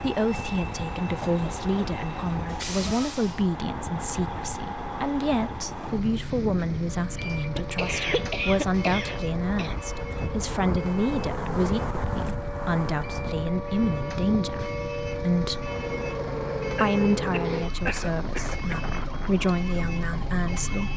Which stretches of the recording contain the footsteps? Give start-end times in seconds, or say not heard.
not heard.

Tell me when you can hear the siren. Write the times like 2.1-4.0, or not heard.
6.9-20.9.